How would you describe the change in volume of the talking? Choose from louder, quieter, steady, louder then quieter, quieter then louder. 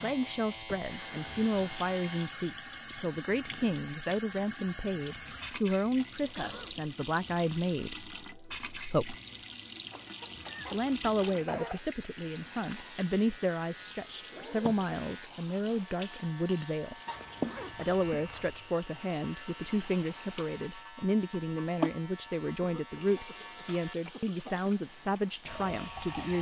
steady.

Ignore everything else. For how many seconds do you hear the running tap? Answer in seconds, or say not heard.
26 s.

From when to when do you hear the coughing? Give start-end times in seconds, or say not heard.
6.3-6.8, 9.9-11.8, 22.6-24.6.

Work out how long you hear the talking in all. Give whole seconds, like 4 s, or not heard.
24 s.